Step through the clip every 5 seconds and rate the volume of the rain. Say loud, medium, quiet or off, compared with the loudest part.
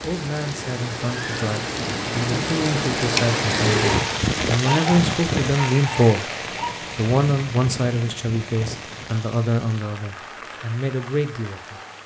loud, medium, quiet.